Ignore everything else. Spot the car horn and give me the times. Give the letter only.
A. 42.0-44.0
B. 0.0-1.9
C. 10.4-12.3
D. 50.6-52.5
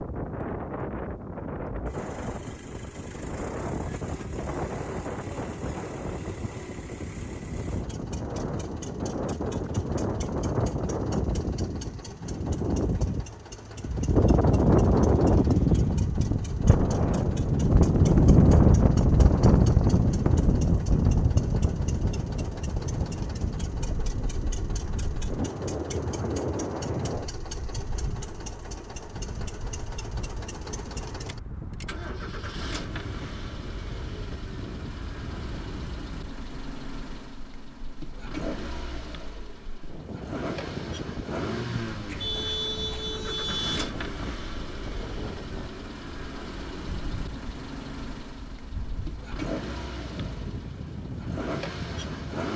A.